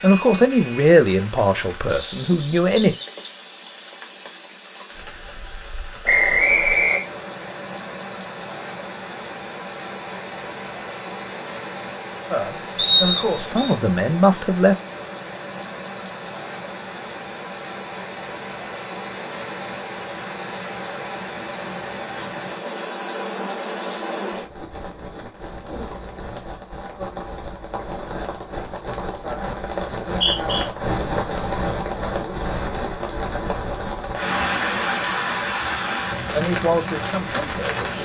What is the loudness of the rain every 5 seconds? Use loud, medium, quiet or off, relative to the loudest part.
quiet, quiet, quiet, quiet, medium, medium, loud, medium.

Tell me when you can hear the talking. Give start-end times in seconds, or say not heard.
0.0-3.0, 12.3-14.8, 36.3-38.0.